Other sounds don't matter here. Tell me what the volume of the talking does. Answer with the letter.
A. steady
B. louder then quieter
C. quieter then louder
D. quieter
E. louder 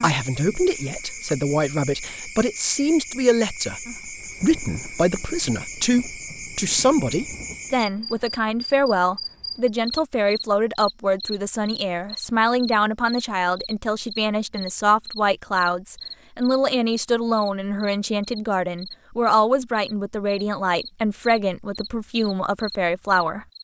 A.